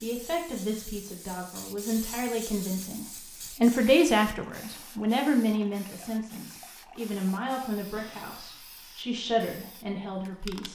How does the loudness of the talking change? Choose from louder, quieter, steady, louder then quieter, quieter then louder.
louder then quieter.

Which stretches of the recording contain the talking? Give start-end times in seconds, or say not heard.
0.0-10.6.